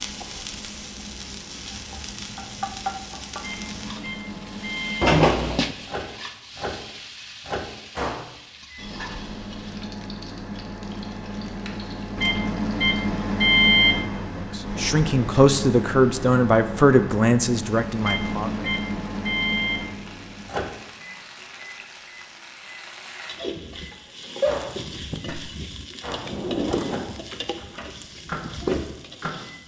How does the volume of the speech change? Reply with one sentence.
The loudness of the speech goes up, then down.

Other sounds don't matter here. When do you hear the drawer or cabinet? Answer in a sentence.
The drawer or cabinet can be heard from 5.0 to 5.8 s and from 26.2 to 27.7 s.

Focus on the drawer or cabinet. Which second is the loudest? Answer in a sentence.
The volume of the drawer or cabinet peaks at 5 seconds.